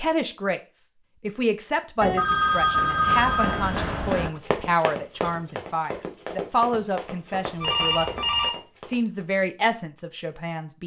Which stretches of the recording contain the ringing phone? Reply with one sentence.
You can hear the ringing phone from 2.0 to 3.8 s and from 7.6 to 8.5 s.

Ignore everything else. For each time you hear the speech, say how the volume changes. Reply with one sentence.
You can hear the speech from 0.0 to 10.8 s, at a steady volume.